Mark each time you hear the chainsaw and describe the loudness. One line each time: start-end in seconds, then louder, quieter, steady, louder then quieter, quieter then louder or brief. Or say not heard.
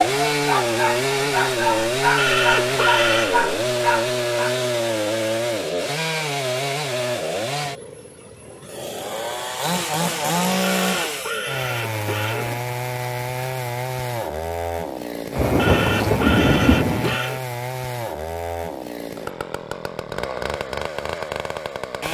0.0-22.0 quieter.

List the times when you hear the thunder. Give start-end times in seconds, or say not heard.
15.3-17.2.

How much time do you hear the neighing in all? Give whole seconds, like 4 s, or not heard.
5 s.